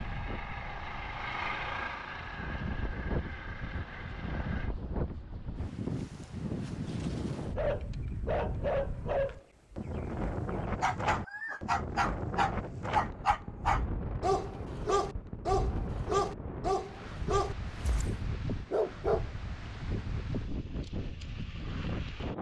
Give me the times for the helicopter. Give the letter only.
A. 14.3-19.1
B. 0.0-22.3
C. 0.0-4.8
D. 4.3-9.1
C.